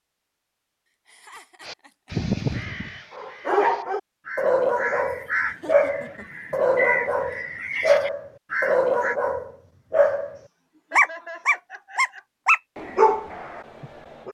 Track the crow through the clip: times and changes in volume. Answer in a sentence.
You can hear the crow from 1.6 to 9.2 s, getting quieter then louder.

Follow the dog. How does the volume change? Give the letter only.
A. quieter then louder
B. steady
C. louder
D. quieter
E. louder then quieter
B.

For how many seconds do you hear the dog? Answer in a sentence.
The dog can be heard for 11 seconds in total.